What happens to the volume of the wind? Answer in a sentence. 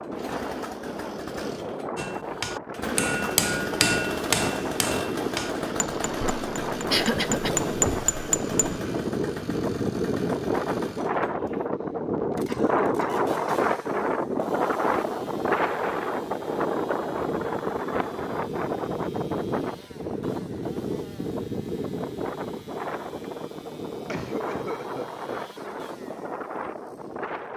The volume of the wind goes up, then down.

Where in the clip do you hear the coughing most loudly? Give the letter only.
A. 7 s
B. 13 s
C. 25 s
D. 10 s
A.